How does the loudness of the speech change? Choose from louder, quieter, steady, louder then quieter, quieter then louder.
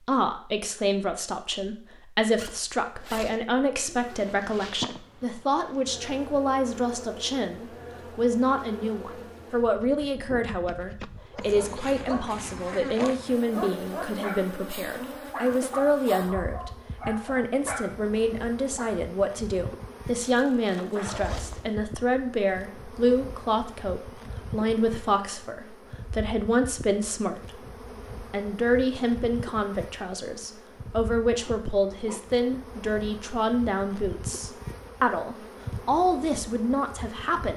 steady.